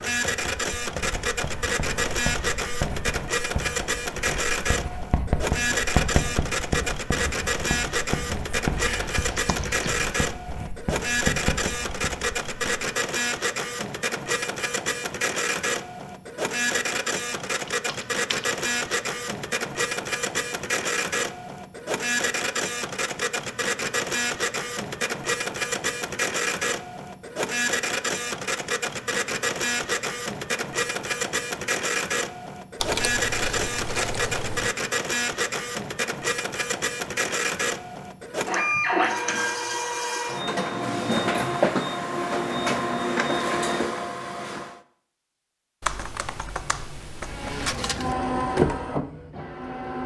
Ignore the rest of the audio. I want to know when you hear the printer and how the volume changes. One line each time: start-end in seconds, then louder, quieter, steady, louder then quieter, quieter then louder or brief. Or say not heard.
0.0-44.8 steady
47.2-50.0 brief.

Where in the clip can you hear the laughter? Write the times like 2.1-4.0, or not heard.
not heard.